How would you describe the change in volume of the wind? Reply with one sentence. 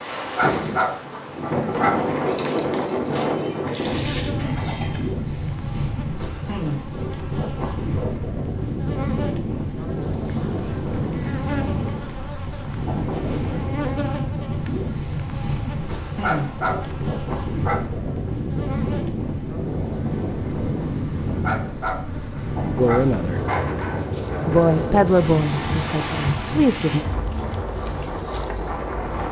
The loudness of the wind stays about the same.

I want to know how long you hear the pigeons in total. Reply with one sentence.
You can hear the pigeons for 3 seconds altogether.